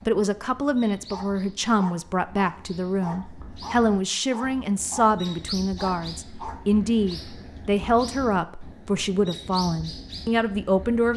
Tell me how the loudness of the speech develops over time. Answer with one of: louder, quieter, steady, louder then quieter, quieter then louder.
steady.